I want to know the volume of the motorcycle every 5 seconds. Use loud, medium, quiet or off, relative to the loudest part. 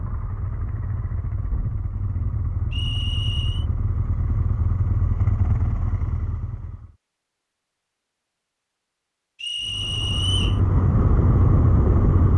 medium, medium, loud.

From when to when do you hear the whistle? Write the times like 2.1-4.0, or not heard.
2.7-3.6, 9.4-10.6.